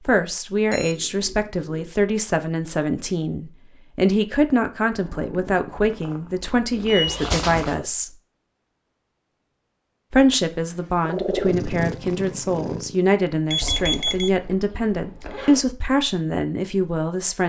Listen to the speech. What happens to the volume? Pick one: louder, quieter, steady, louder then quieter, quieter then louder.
steady.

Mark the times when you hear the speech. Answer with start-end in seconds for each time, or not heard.
0.1-8.2, 10.1-17.4.